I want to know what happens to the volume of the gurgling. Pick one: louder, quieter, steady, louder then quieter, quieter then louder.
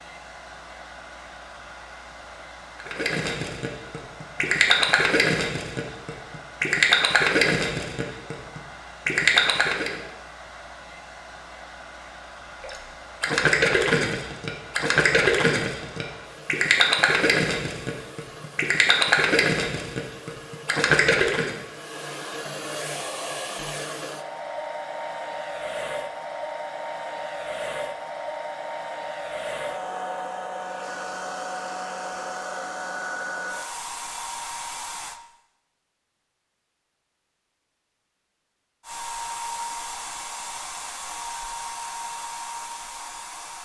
steady.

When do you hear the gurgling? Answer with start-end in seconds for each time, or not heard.
2.8-10.0, 12.6-21.6.